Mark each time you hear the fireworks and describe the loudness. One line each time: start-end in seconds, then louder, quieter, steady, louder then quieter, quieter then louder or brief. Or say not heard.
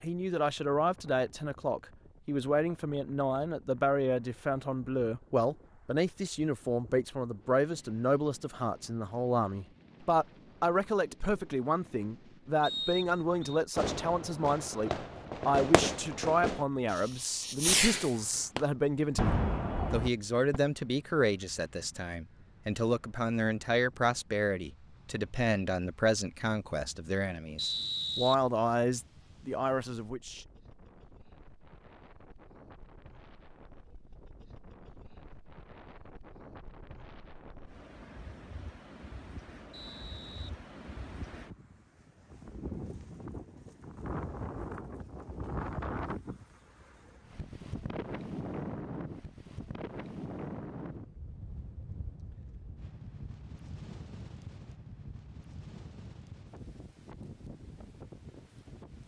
13.8-20.6 louder.